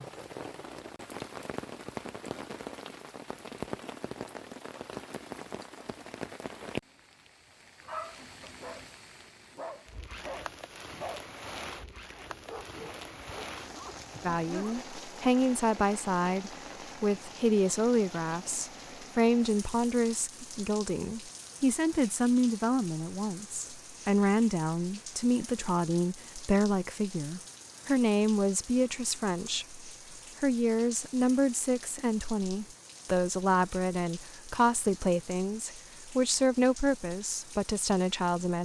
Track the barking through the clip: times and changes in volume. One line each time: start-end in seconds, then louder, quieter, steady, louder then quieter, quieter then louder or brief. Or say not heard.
7.8-14.8 louder then quieter.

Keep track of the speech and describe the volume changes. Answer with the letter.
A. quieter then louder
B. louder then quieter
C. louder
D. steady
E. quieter
D.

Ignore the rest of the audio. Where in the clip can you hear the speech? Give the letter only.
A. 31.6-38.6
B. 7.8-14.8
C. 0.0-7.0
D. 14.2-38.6
D.